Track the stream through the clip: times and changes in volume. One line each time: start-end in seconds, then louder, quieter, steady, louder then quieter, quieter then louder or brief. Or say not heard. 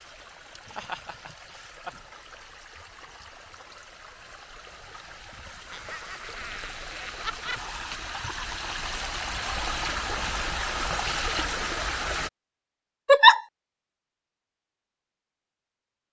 0.0-12.3 louder.